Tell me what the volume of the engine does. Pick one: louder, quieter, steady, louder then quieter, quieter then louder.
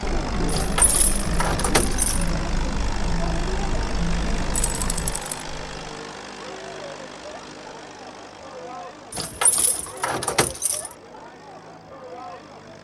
quieter.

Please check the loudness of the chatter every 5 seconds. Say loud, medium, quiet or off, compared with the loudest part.
loud, medium, medium.